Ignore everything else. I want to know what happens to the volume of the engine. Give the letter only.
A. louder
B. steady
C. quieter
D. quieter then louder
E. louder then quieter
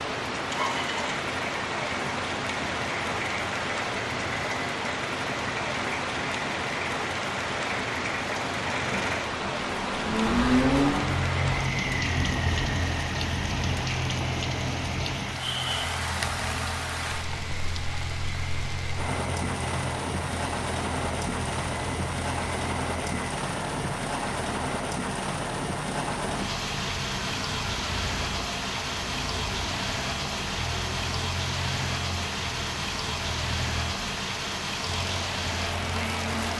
E.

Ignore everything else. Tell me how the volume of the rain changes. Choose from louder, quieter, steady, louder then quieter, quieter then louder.
steady.